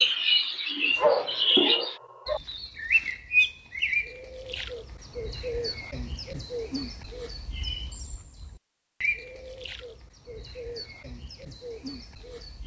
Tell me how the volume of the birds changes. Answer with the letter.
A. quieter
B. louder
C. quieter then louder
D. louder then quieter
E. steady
A.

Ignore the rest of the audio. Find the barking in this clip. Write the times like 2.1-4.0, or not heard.
0.9-2.4.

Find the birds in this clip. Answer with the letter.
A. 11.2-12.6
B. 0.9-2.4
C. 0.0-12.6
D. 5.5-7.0
C.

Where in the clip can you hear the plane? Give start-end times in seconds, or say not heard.
not heard.